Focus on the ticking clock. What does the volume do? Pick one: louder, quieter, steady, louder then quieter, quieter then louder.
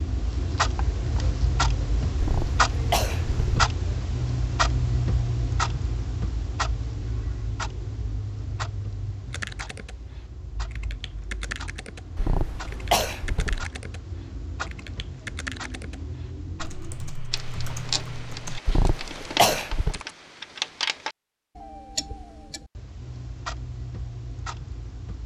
quieter then louder.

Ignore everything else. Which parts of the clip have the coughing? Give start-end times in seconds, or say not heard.
2.1-3.7, 12.2-13.7, 18.6-20.0.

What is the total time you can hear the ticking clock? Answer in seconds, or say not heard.
25 s.